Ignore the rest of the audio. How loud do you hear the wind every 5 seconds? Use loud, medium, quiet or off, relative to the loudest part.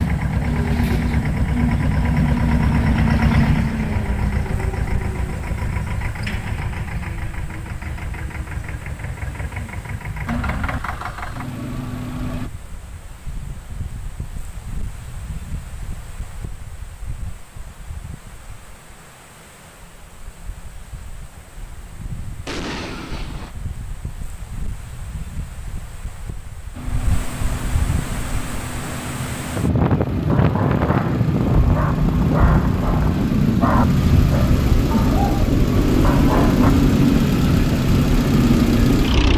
quiet, quiet, quiet, quiet, quiet, medium, loud, loud.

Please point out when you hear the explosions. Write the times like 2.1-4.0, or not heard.
22.4-23.6.